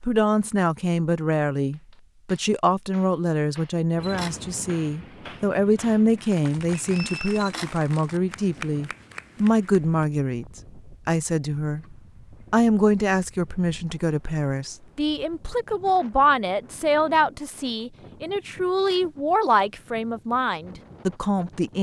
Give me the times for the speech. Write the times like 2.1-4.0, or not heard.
0.0-11.8, 12.5-21.7.